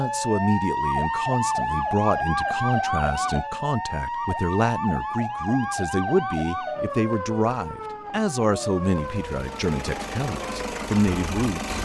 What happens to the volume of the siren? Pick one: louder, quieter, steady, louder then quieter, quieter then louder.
quieter.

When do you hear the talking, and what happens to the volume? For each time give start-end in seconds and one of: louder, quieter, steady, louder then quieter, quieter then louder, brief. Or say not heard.
0.0-11.7 steady.